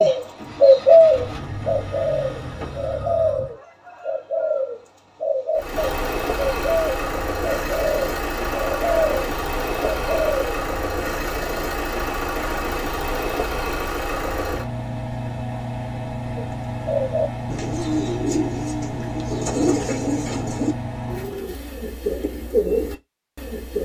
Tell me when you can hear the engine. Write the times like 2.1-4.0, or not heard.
0.2-3.5, 5.5-21.4.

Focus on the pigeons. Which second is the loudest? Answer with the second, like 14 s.
1 s.